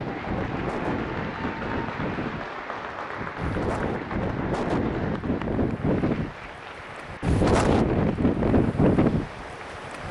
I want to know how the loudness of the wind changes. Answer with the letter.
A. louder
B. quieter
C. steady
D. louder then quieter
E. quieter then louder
A.